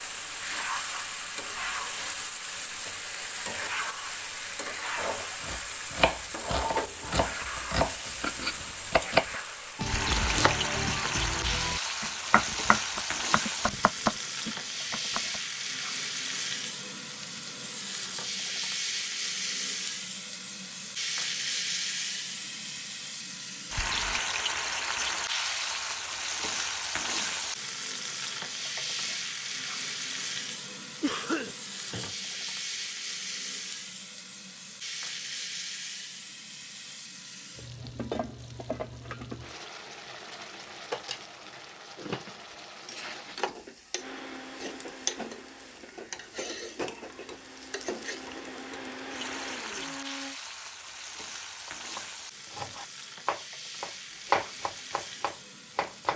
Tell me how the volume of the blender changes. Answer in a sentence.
The volume of the blender goes down, then up.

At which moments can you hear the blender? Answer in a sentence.
You can hear the blender from 44.0 to 50.4 s.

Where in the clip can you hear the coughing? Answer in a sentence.
The coughing can be heard from 31.0 to 32.1 s.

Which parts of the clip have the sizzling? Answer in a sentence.
You can hear the sizzling from 0.0 to 56.1 s.